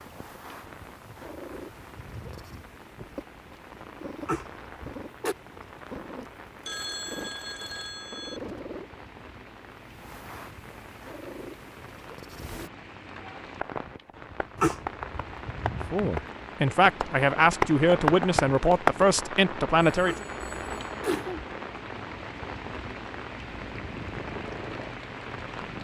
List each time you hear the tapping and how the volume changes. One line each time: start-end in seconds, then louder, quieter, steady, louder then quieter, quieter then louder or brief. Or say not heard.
13.4-19.2 louder.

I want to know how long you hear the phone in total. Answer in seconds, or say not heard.
3 s.